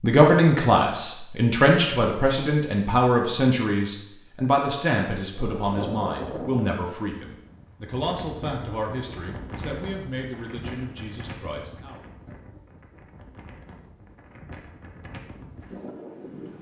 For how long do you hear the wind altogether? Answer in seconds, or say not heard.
11 s.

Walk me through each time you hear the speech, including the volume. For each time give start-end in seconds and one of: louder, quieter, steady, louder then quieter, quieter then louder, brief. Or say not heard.
0.0-12.0 quieter.